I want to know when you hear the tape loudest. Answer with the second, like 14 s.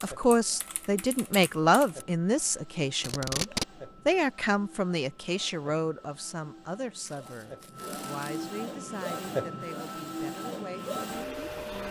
3 s.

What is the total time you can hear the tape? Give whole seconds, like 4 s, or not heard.
2 s.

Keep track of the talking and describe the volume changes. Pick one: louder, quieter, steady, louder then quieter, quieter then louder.
quieter.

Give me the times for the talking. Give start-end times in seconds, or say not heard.
0.0-11.8.